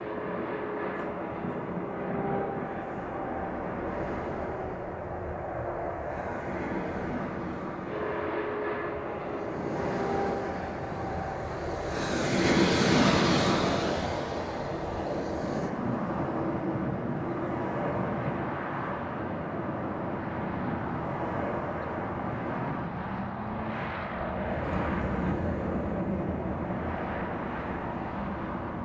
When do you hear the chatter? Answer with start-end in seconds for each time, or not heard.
not heard.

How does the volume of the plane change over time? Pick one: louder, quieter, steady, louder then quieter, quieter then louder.
steady.